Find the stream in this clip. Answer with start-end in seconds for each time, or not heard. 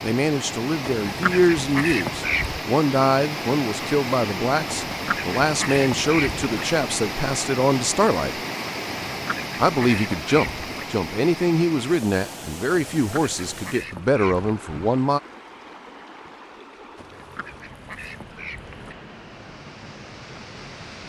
0.0-21.0.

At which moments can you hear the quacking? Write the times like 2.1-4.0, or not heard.
0.8-2.6, 4.7-6.6, 9.1-10.8, 12.9-14.6, 16.9-18.9.